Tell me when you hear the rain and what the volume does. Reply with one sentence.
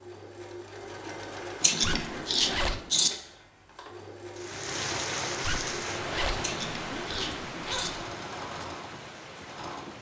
The rain can be heard from 4.3 to 9.9 s, getting quieter.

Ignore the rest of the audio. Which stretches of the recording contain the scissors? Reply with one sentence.
The scissors can be heard from 1.6 to 3.1 s and from 6.4 to 7.9 s.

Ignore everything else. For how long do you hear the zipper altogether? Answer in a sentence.
The zipper can be heard for 4 seconds in total.